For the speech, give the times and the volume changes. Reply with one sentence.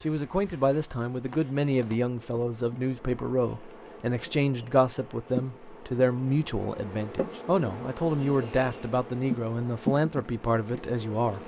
The speech can be heard from 0.0 to 11.4 s, at a steady volume.